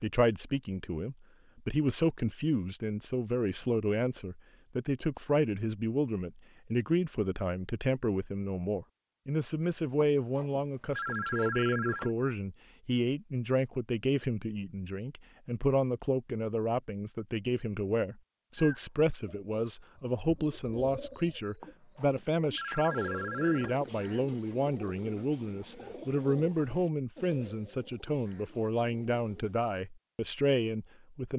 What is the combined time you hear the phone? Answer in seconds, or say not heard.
4 s.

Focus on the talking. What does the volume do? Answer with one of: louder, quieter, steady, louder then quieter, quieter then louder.
steady.